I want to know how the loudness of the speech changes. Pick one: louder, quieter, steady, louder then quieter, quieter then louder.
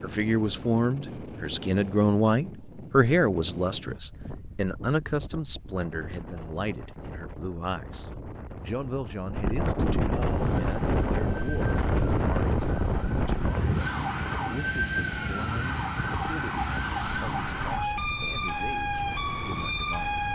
quieter.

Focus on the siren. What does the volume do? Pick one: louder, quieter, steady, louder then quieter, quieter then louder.
louder.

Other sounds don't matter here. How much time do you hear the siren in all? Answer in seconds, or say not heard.
10 s.